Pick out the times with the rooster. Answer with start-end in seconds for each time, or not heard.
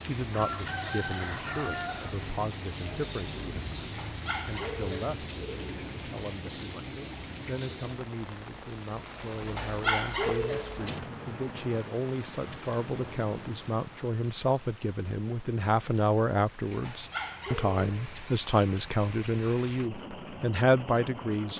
0.3-2.2.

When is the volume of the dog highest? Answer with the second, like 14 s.
10 s.